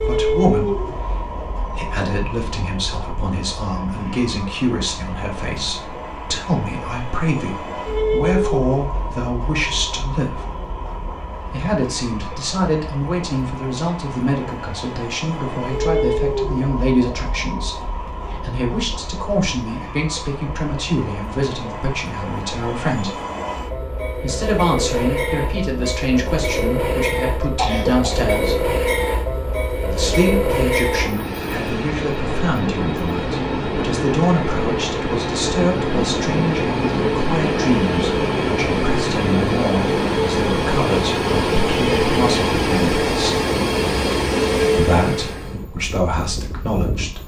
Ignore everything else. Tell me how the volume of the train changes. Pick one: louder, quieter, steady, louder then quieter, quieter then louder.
louder.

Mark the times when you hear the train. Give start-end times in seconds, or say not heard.
0.0-47.2.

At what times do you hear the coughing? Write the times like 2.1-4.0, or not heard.
27.4-28.2.